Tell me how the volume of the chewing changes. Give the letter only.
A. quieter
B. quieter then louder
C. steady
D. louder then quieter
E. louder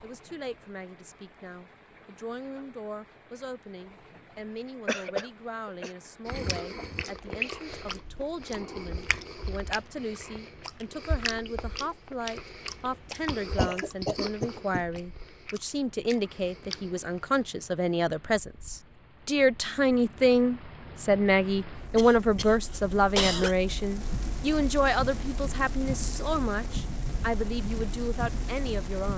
A.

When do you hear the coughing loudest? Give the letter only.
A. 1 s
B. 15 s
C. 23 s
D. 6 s
C.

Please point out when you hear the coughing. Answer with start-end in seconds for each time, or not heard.
4.8-5.9, 13.6-14.8, 21.9-23.6.